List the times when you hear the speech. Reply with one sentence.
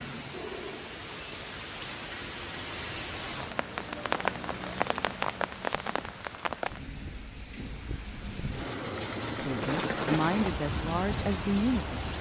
You can hear the speech from 9.3 to 12.1 s.